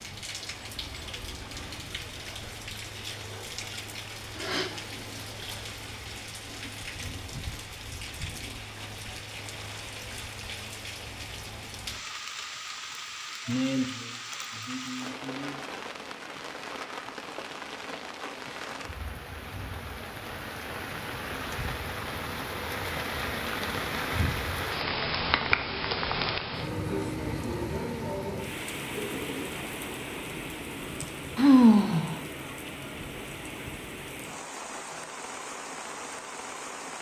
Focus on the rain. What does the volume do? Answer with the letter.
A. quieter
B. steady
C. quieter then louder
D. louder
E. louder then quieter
E.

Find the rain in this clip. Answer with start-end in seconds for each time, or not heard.
0.0-36.9.